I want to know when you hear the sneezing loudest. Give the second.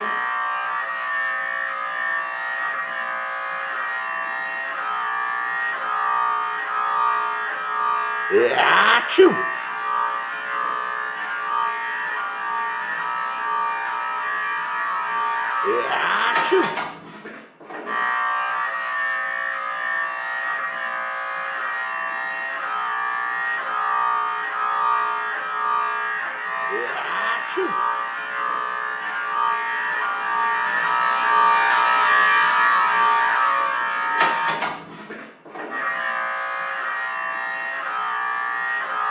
9 s.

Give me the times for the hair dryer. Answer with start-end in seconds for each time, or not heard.
not heard.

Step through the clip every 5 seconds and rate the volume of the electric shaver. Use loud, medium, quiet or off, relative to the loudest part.
medium, medium, medium, medium, medium, medium, loud, medium.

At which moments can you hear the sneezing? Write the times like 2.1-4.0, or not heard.
8.3-9.3, 15.6-16.7, 26.6-27.8.